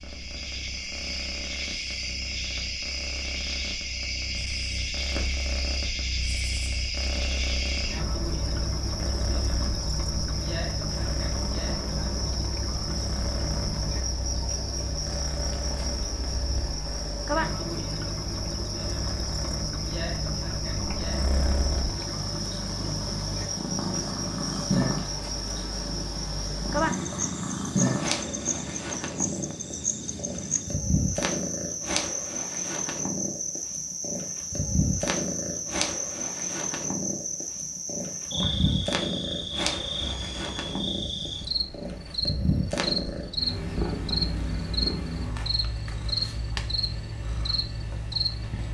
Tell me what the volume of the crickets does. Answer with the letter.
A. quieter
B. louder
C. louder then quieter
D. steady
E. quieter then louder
D.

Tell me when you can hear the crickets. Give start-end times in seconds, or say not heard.
0.0-48.6.